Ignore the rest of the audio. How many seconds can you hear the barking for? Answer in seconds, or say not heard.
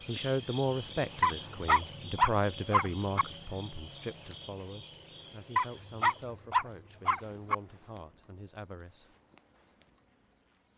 4 s.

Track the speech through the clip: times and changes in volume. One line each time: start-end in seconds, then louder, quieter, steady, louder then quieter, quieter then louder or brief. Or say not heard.
0.1-9.2 quieter.